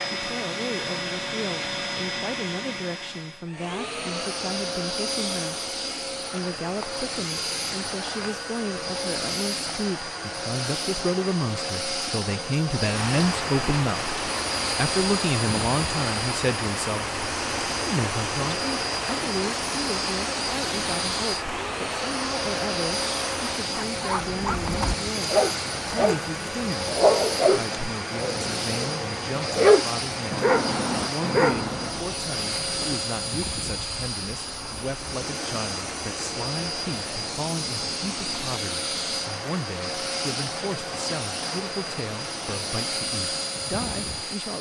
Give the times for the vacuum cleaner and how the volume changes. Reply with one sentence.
The vacuum cleaner can be heard from 0.0 to 44.5 s, at a steady volume.